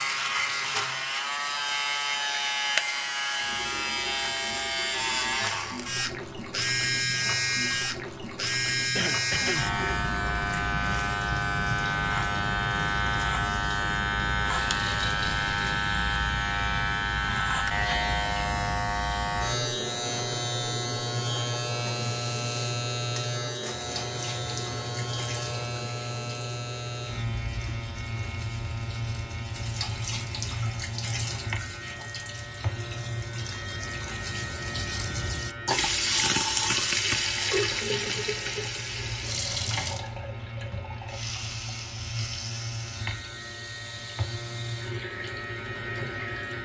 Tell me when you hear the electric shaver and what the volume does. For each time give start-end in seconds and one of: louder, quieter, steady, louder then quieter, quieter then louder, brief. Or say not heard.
0.0-46.6 quieter.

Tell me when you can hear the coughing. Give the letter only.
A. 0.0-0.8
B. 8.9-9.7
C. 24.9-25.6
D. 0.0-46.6
B.